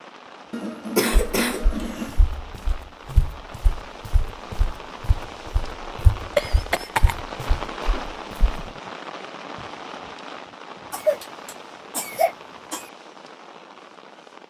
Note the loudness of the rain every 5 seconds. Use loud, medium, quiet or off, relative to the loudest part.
medium, loud, medium.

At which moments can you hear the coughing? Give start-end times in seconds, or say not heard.
0.5-2.2, 6.3-7.2, 10.9-12.8.